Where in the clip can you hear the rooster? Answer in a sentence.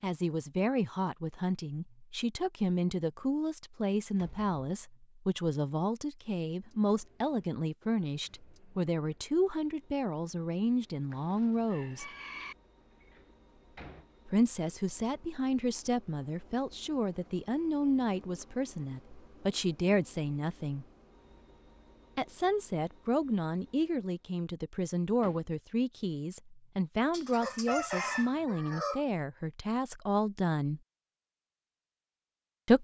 The rooster can be heard from 11.1 to 12.6 s and from 27.1 to 29.1 s.